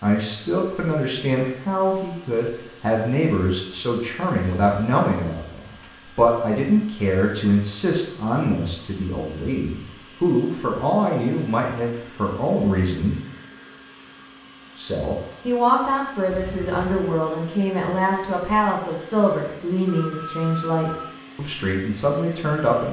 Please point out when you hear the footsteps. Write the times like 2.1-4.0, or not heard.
not heard.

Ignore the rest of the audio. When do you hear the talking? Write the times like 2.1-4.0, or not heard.
0.0-13.2, 14.8-22.8.